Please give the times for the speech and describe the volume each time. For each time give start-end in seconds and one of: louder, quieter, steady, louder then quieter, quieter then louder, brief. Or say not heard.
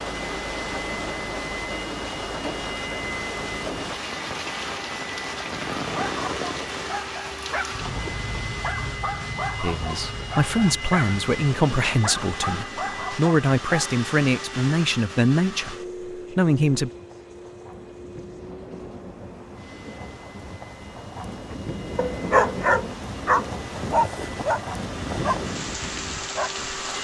9.6-16.9 steady.